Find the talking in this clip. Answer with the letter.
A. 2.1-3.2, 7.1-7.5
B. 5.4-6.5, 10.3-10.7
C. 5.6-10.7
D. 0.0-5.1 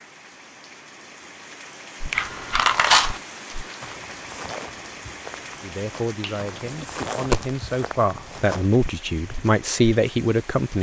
C.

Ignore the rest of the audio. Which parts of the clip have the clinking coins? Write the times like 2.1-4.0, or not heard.
2.1-3.2, 7.1-7.5.